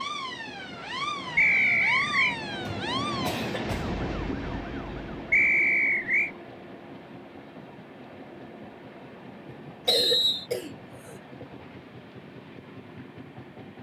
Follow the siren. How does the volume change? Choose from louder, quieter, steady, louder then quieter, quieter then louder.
quieter.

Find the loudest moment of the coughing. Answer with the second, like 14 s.
10 s.